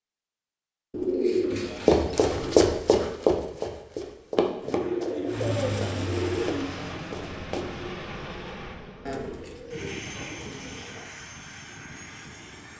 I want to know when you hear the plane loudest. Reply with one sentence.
The volume of the plane peaks at 6 seconds.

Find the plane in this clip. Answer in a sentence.
The plane can be heard from 5.2 to 12.7 s.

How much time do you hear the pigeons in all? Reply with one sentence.
The pigeons can be heard for 6 seconds in total.